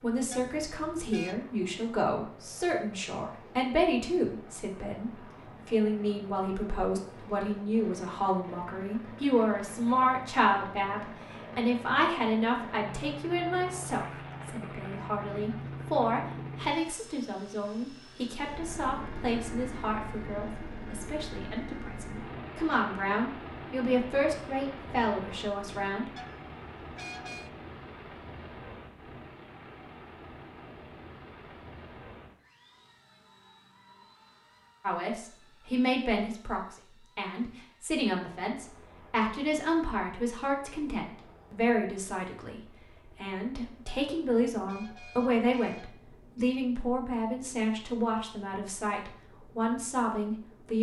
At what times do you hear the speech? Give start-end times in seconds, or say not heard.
0.0-26.1, 34.8-42.6, 43.2-50.7.